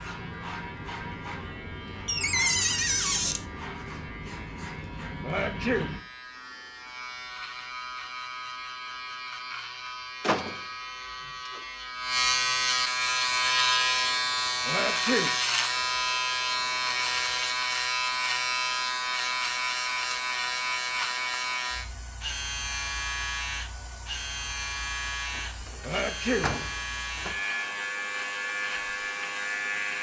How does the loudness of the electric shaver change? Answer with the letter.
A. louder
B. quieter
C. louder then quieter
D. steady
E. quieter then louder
C.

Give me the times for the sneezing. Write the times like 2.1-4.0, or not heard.
5.2-5.9, 14.7-15.3, 25.8-26.5.